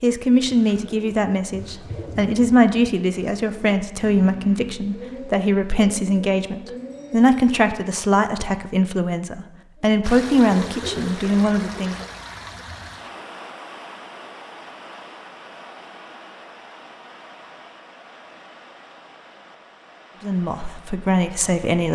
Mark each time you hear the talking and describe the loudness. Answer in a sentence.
You can hear the talking from 0.0 to 12.1 s, at a steady volume; and briefly from 20.2 to 21.9 s.